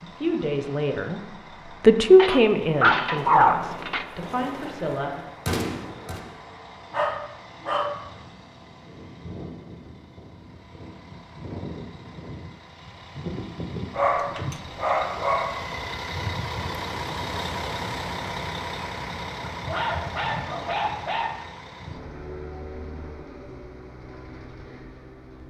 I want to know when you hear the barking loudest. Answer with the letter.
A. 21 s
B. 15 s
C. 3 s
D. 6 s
C.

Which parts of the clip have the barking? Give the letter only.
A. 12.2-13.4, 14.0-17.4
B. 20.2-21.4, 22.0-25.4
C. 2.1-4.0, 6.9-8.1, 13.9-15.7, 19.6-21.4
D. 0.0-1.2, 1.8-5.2
C.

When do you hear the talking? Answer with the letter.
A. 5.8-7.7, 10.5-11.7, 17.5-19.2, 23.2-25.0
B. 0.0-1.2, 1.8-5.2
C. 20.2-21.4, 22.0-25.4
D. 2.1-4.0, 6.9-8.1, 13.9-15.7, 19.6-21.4
B.